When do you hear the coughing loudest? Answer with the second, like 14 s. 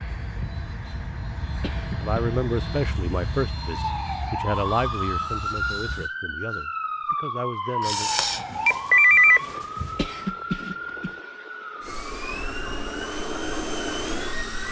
10 s.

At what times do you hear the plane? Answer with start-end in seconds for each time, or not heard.
0.0-6.1, 11.8-14.6.